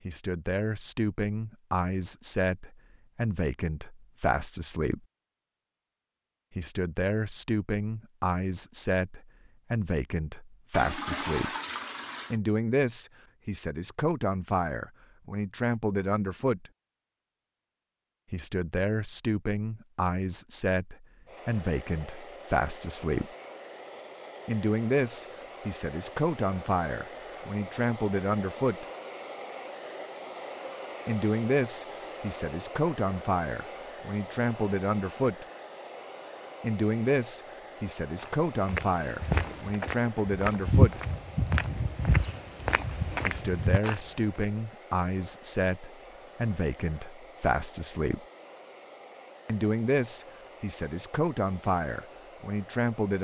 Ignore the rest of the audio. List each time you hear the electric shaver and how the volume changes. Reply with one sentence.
The electric shaver can't be heard in this clip.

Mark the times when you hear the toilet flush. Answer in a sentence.
You can hear the toilet flush from 10.7 to 12.4 s.